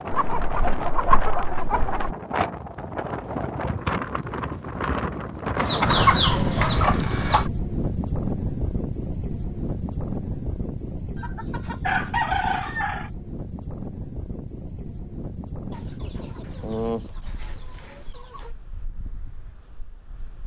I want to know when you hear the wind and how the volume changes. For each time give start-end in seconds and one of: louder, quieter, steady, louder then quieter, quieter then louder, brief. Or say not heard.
0.0-20.4 quieter.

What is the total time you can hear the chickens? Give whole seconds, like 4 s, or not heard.
9 s.